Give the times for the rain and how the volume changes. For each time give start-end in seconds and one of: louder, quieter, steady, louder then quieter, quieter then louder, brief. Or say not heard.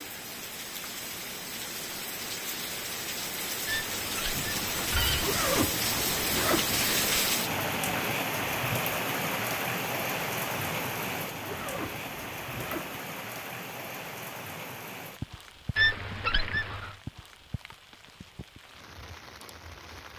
0.0-20.1 louder then quieter.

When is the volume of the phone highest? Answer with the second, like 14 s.
16 s.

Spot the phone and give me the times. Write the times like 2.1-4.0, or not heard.
3.6-5.3, 15.8-16.9.